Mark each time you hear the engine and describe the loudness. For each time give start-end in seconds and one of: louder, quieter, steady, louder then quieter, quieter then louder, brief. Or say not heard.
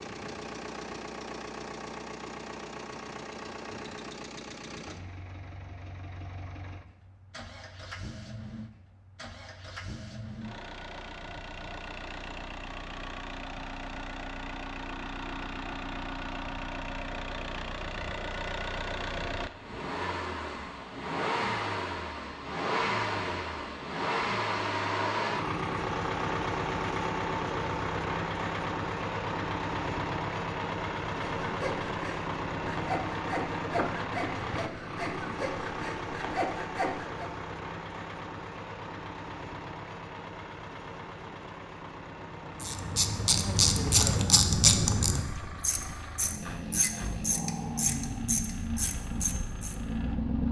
0.0-50.4 louder then quieter.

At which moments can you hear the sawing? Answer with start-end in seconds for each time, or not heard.
31.4-37.3.